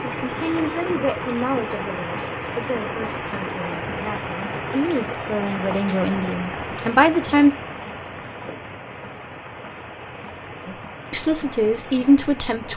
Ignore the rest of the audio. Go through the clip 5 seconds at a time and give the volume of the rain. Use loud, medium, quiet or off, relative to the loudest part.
loud, loud, medium.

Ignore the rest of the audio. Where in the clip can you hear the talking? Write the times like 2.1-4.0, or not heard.
0.0-7.5, 10.7-12.7.